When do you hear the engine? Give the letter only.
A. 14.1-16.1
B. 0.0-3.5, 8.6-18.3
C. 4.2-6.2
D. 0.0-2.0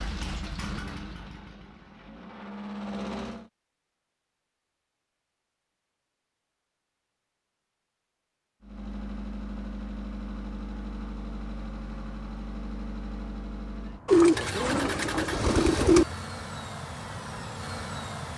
B.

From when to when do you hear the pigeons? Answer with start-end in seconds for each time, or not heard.
14.1-16.1.